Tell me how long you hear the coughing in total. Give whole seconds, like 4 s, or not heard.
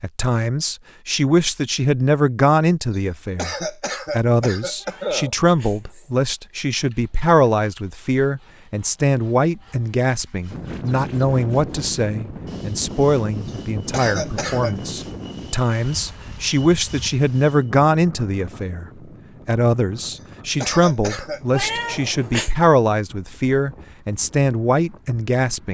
5 s.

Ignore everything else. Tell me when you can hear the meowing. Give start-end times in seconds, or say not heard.
4.8-6.2, 21.5-22.5.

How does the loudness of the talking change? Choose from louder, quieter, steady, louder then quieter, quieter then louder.
steady.